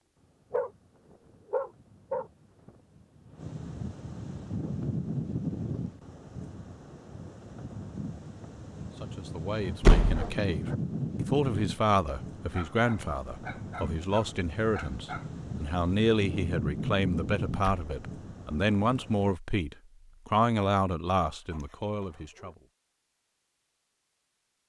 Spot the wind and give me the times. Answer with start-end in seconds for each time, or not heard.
0.0-19.4.